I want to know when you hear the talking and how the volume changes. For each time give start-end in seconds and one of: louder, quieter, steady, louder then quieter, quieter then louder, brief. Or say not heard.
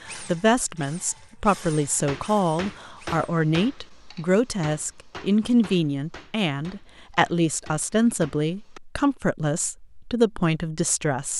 0.0-11.3 steady.